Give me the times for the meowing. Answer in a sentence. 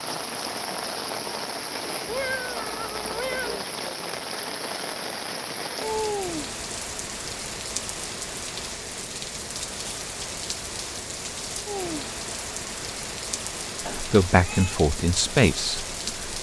The meowing can be heard from 2.0 to 3.6 s and from 13.8 to 14.8 s.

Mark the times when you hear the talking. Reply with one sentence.
You can hear the talking from 13.9 to 16.3 s.